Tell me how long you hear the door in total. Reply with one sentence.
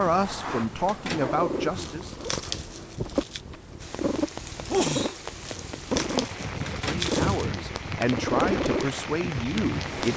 The door can be heard for 2 seconds in total.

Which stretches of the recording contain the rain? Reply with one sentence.
You can hear the rain from 3.8 to 10.1 s.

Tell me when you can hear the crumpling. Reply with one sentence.
The crumpling can be heard from 1.8 to 3.4 s and from 5.4 to 7.5 s.